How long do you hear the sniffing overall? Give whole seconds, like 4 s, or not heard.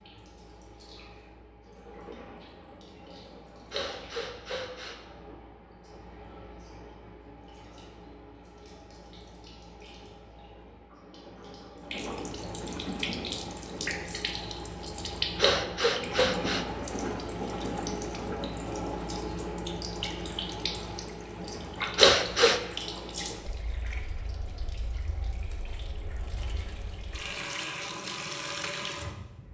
3 s.